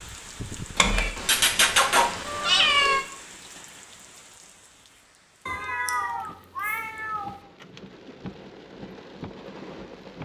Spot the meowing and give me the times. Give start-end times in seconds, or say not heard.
0.8-3.0, 5.5-7.3.